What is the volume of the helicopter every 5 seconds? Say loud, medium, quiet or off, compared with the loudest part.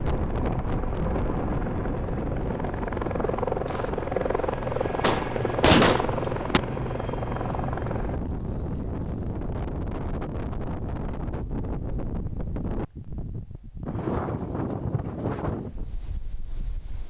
loud, loud, off, off.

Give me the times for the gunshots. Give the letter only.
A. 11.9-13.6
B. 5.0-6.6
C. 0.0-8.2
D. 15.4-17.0
B.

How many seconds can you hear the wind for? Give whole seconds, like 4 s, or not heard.
17 s.